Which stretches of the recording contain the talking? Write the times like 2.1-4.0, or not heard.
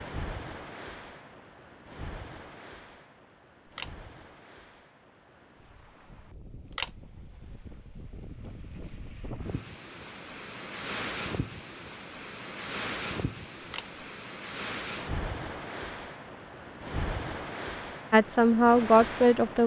18.1-19.6.